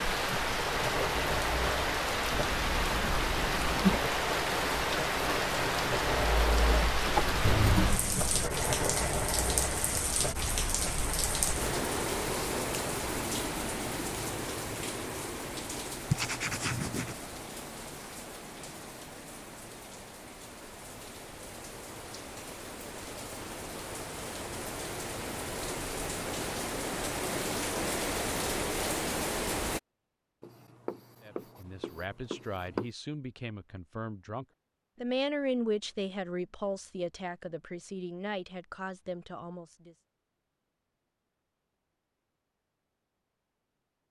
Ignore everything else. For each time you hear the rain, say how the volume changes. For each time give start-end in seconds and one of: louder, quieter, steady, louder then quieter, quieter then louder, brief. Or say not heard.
0.0-29.8 quieter then louder.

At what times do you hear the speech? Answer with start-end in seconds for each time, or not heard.
31.2-40.0.